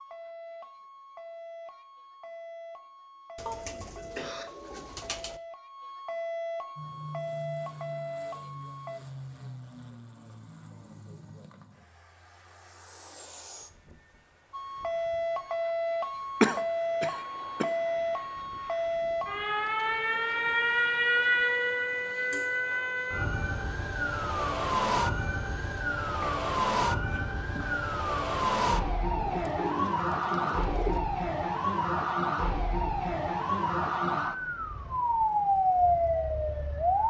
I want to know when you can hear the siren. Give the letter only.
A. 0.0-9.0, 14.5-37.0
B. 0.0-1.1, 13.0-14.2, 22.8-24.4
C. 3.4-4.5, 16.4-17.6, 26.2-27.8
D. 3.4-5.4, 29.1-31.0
A.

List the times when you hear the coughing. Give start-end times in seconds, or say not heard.
3.4-4.5, 16.4-17.6, 26.2-27.8.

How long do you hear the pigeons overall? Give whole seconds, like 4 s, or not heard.
4 s.